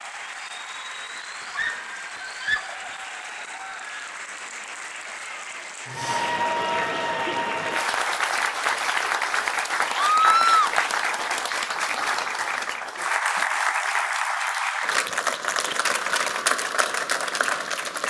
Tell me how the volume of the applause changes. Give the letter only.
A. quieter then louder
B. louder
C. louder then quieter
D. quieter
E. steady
B.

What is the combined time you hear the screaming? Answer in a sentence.
The screaming can be heard for 2 seconds in total.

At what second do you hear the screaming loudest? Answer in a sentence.
The volume of the screaming peaks at 10 seconds.